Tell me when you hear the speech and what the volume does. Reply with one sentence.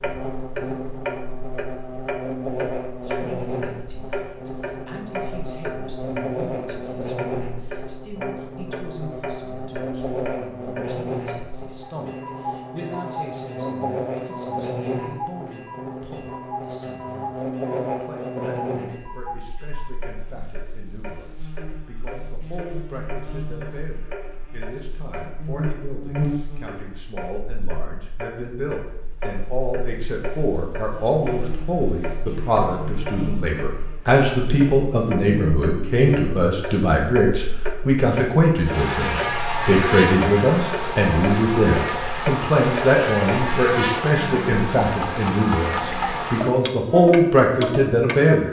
The speech can be heard from 3.0 to 48.4 s, getting louder.